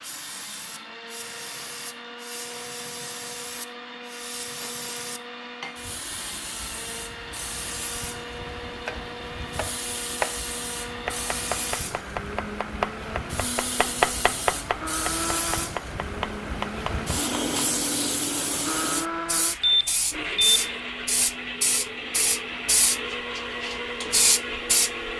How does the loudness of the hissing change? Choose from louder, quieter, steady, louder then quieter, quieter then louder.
louder.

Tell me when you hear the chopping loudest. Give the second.
14 s.